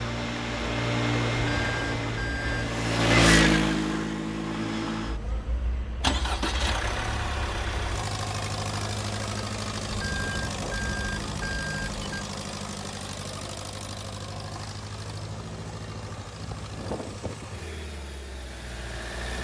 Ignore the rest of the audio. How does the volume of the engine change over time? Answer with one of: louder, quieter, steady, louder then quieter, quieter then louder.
quieter.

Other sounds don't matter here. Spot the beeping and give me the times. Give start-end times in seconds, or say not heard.
1.4-2.8, 9.9-12.2.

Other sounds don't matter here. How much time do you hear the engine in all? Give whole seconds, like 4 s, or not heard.
19 s.